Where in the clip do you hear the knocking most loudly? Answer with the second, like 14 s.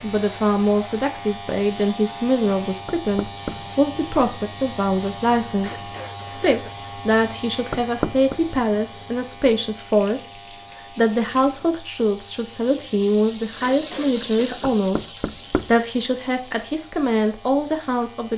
8 s.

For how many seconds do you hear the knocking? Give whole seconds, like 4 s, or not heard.
3 s.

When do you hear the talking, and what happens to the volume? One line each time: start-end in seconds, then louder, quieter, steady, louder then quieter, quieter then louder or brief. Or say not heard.
0.0-18.3 steady.